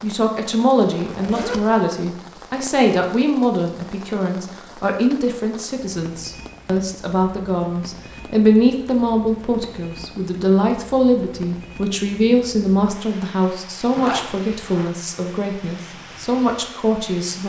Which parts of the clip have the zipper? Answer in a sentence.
The zipper can be heard from 1.0 to 1.6 s and from 13.9 to 14.9 s.